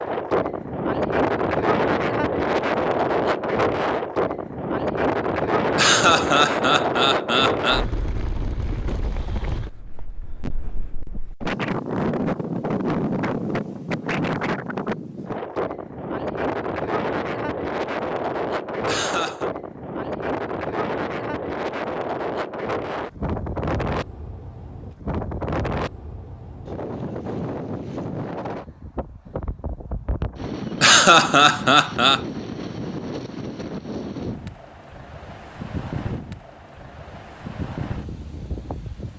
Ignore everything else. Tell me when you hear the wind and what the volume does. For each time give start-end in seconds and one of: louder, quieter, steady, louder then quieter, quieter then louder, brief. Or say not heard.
0.0-39.1 quieter.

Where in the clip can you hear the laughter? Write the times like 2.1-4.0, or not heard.
5.8-7.8, 18.9-19.5, 30.8-32.2.